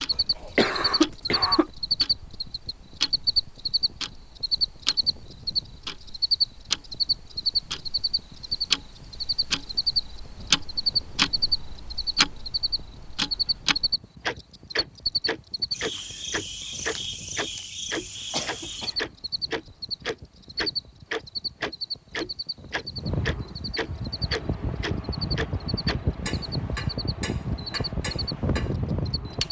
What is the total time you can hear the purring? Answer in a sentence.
You can't hear the purring here.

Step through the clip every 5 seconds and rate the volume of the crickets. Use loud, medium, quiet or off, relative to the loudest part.
loud, loud, loud, medium, medium, medium.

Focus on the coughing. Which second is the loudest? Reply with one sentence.
The volume of the coughing peaks at 1 second.